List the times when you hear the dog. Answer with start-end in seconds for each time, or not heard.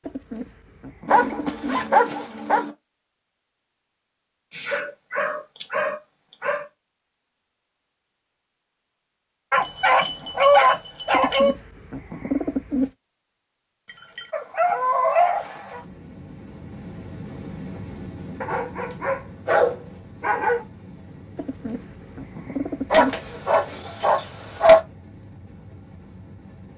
1.1-2.7, 4.5-6.7, 9.5-11.6, 14.2-15.8, 18.4-20.6, 22.9-24.8.